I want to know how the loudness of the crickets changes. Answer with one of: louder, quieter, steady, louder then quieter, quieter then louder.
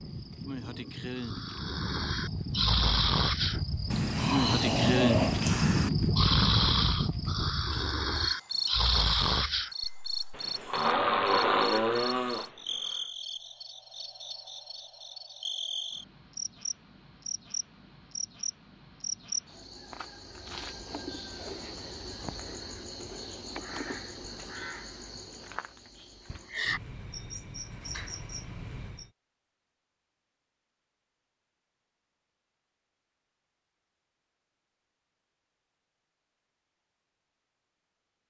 quieter.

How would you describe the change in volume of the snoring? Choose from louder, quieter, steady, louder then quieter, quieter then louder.
steady.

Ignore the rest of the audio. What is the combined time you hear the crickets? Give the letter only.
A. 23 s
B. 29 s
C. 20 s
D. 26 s
B.